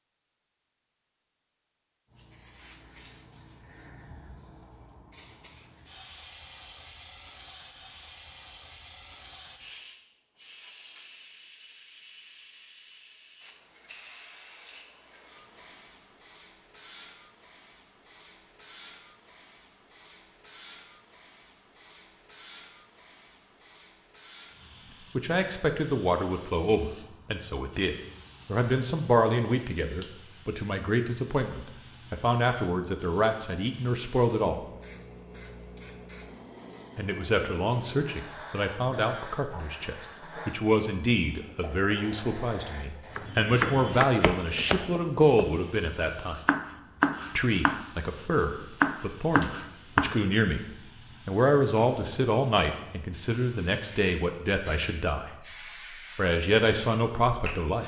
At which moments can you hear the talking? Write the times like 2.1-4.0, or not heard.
25.1-34.6, 37.0-46.4, 47.4-50.6, 51.2-55.4, 56.1-57.8.